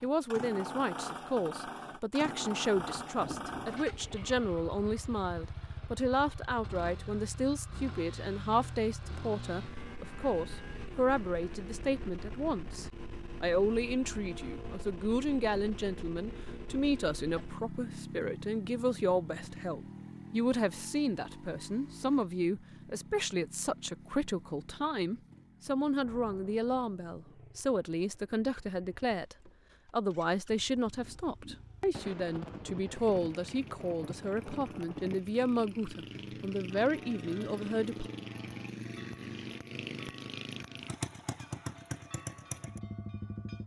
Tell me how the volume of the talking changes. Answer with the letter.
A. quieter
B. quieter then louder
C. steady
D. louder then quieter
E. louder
C.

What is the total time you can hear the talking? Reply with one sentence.
You can hear the talking for 38 seconds altogether.